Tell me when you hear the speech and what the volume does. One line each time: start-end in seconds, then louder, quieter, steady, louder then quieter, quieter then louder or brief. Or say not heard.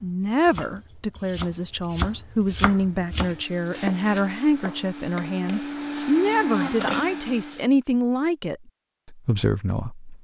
0.0-10.2 steady.